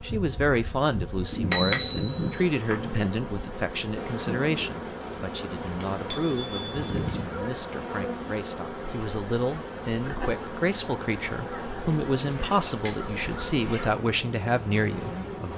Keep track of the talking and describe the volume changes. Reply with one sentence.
The volume of the talking goes down, then up.